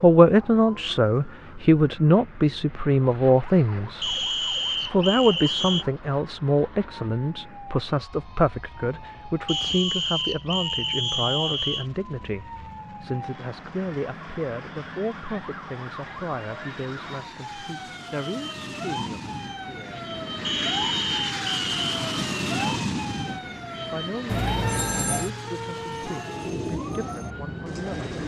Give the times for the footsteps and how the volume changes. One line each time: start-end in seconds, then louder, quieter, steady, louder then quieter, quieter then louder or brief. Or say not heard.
not heard.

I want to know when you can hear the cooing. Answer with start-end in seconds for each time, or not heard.
25.8-28.2.